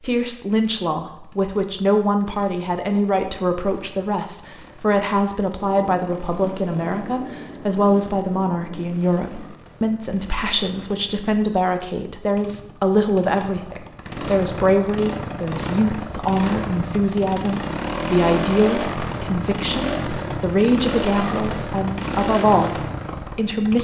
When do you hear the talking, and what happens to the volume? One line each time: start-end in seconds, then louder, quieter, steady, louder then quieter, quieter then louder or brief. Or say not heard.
0.0-23.8 steady.